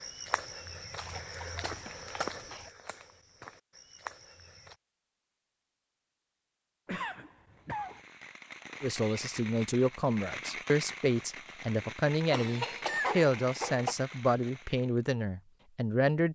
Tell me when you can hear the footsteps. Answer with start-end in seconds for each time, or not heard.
0.0-4.8.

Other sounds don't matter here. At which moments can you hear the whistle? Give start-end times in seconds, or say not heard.
not heard.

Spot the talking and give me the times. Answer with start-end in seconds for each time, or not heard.
8.8-16.3.